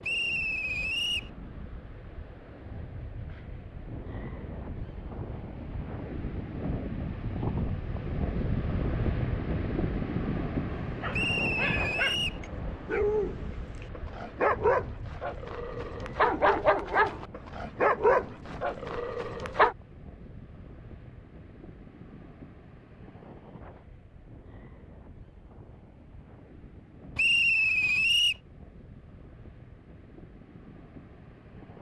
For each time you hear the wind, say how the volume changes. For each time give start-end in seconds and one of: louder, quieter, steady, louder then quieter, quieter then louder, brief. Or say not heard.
0.0-31.7 louder then quieter.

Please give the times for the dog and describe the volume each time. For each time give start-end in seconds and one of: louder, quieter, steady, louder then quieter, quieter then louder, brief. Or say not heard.
10.8-19.8 louder.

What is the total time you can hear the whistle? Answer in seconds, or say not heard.
4 s.